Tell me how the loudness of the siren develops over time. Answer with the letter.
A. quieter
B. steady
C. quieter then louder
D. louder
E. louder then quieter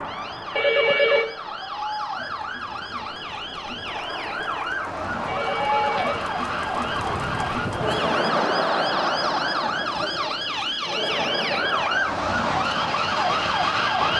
D.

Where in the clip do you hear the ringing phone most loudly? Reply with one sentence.
The volume of the ringing phone peaks at 1 second.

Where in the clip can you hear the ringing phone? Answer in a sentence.
The ringing phone can be heard from 0.6 to 1.2 s, from 5.2 to 6.3 s and from 10.8 to 11.7 s.